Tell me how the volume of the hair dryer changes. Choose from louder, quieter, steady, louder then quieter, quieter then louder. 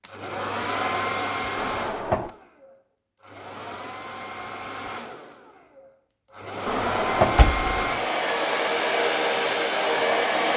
quieter then louder.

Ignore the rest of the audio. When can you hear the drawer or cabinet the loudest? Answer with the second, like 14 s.
7 s.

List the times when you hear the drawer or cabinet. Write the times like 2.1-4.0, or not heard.
1.6-2.3, 6.7-7.7.